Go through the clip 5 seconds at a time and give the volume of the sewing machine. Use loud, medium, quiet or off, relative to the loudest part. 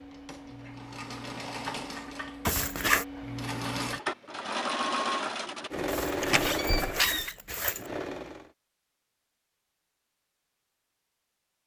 loud, loud, off.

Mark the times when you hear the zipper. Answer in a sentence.
The zipper can be heard from 2.5 to 3.0 s and from 5.8 to 7.9 s.